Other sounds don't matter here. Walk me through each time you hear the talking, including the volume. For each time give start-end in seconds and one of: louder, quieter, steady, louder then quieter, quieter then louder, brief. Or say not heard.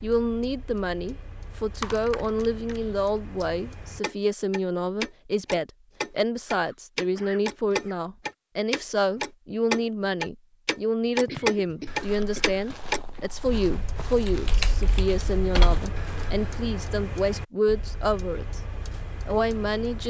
0.0-18.6 steady
19.2-20.0 brief.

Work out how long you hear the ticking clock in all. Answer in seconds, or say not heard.
20 s.